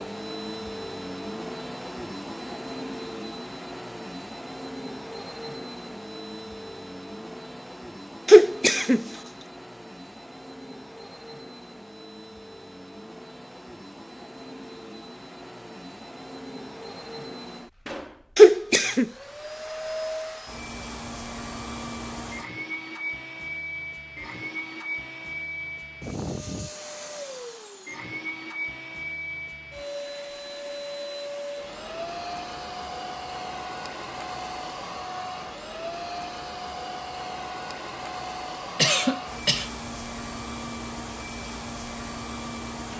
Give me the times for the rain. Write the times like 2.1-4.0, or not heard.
not heard.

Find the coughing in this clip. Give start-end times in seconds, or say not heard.
8.2-9.1, 18.4-19.1, 38.8-39.7.